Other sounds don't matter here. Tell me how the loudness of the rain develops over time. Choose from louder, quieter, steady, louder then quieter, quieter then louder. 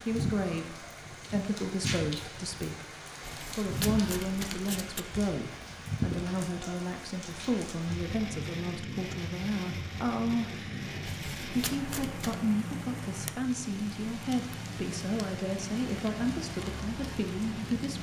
steady.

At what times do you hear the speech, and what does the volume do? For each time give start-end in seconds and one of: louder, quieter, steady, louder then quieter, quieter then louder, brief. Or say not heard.
0.0-17.9 steady.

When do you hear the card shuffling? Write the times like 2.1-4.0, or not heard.
3.2-5.0, 11.1-12.4.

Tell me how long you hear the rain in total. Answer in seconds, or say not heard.
18 s.